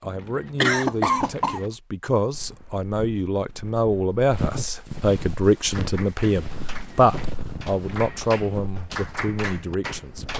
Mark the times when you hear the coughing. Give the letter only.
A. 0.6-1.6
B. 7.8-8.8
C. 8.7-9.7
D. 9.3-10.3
A.